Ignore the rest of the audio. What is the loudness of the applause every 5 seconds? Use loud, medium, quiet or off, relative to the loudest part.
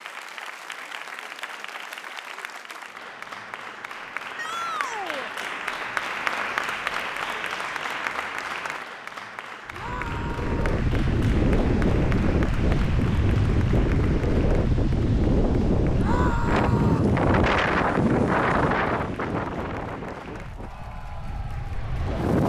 medium, loud, medium, quiet, quiet.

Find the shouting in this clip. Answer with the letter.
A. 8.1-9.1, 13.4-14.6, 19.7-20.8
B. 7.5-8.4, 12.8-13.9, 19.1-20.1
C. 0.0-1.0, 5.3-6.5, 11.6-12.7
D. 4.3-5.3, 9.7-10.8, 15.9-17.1
D.